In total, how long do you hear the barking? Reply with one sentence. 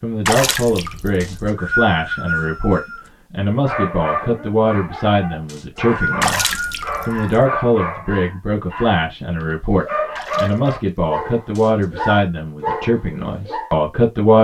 You can hear the barking for 10 seconds altogether.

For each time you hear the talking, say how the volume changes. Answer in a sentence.
The talking can be heard from 0.0 to 14.3 s, at a steady volume.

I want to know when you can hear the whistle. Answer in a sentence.
You can hear the whistle from 1.2 to 3.1 s, from 5.5 to 7.2 s and from 11.6 to 12.2 s.